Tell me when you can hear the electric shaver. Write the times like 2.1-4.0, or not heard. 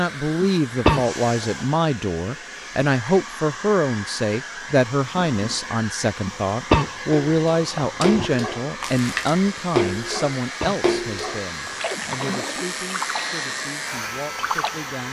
8.8-15.0.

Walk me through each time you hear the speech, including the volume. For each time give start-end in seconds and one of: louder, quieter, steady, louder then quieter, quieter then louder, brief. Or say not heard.
0.0-15.0 quieter.